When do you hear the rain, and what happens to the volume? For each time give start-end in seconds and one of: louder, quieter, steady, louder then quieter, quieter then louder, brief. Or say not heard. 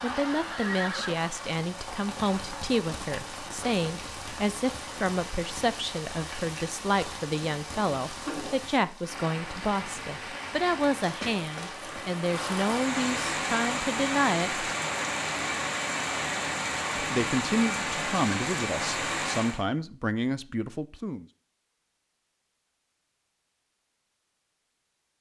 0.0-19.6 louder.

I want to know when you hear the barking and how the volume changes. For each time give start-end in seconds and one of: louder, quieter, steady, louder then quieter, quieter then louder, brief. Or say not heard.
not heard.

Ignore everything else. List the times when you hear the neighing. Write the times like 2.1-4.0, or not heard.
0.5-1.1.